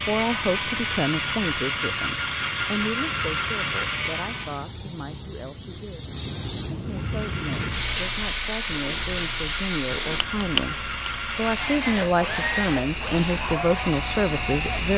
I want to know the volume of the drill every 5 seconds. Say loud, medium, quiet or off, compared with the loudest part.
loud, medium, loud.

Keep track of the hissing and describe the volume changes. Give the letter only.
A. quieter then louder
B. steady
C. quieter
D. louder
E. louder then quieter
D.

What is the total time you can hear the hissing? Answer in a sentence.
You can hear the hissing for 15 seconds altogether.